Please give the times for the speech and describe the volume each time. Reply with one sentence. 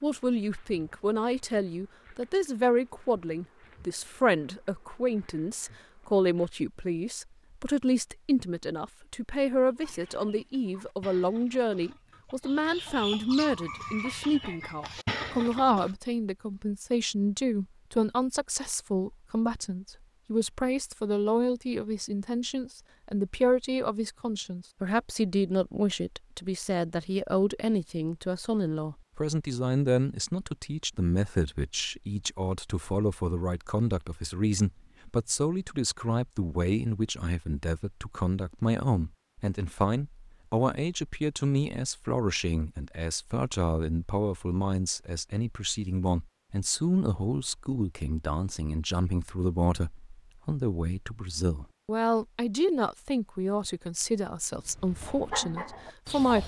You can hear the speech from 0.0 to 56.4 s, at a steady volume.